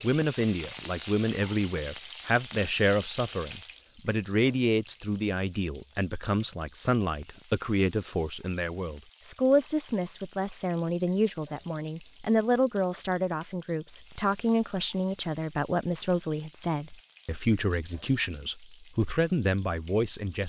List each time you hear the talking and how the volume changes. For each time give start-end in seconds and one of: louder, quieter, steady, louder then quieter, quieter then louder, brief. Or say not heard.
0.0-20.4 steady.